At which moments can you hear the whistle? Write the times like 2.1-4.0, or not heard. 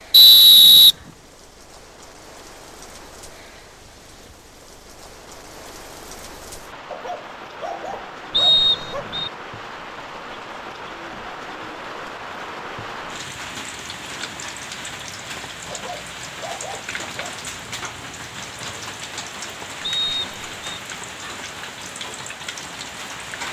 0.1-0.9, 8.3-9.3, 19.8-20.8.